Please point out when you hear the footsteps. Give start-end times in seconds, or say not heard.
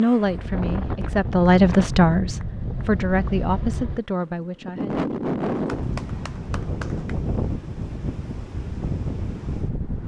not heard.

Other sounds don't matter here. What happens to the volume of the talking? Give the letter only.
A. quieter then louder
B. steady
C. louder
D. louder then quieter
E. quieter
D.